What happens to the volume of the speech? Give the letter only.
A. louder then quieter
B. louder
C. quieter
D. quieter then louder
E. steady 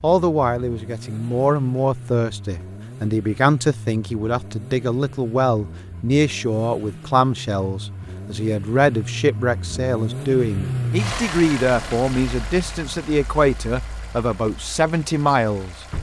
E.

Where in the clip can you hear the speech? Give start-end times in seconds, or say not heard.
0.0-15.8.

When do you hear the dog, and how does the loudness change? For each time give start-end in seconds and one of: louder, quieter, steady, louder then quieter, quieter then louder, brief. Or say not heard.
not heard.